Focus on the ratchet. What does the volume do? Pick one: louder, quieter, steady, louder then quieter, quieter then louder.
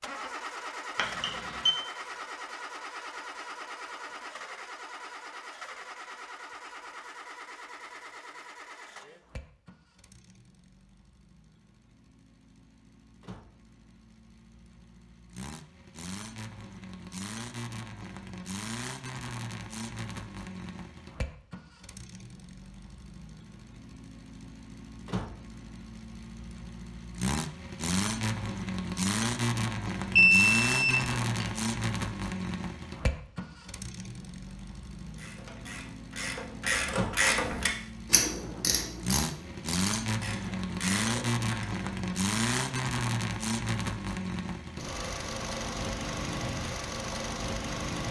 louder then quieter.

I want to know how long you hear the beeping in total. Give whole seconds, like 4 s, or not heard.
2 s.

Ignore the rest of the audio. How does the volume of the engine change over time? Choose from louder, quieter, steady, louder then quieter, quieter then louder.
louder.